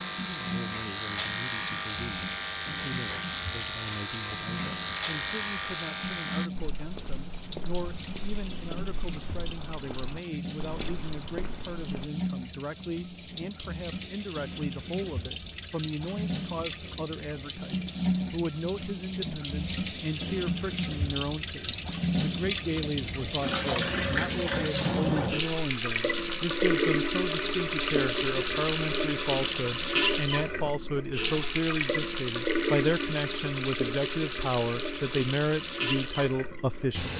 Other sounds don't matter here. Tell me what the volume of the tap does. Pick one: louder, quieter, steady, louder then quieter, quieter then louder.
louder.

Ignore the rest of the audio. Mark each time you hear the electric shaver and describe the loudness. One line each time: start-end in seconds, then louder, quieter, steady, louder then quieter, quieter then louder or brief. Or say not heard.
0.0-6.5 steady.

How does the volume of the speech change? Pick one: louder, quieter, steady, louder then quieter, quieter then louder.
louder.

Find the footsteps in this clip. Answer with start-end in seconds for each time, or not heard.
6.5-12.1.